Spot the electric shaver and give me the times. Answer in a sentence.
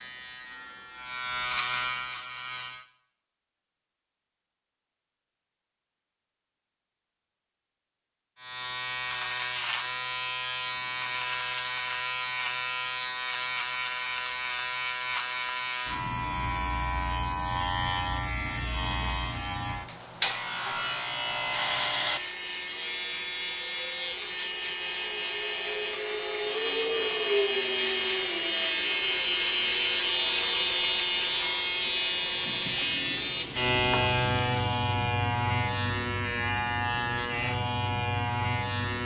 The electric shaver can be heard from 0.0 to 2.9 s and from 8.3 to 39.0 s.